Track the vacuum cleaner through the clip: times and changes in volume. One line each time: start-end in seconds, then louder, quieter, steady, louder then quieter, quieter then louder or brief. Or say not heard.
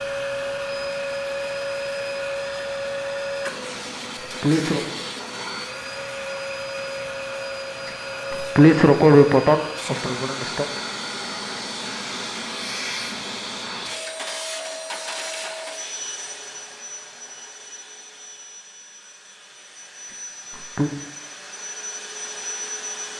0.0-23.1 quieter.